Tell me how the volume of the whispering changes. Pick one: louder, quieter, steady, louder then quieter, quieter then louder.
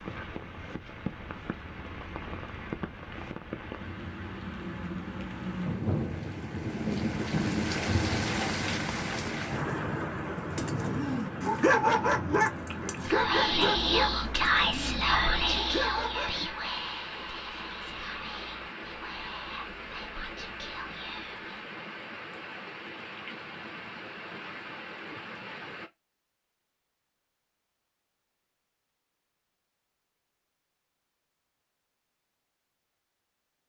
quieter.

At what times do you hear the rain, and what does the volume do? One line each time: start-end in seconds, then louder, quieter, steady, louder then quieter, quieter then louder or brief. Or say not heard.
0.0-25.9 louder then quieter.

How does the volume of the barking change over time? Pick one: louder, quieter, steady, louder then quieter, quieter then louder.
quieter.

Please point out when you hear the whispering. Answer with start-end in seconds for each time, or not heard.
13.0-21.6.